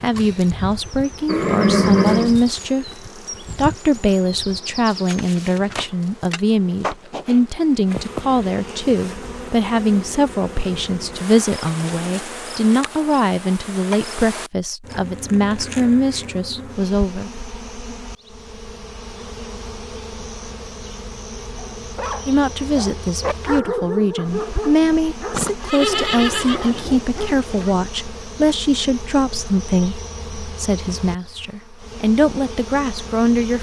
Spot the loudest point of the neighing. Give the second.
2 s.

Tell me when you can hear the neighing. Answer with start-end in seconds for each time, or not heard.
1.2-2.4, 25.3-27.7.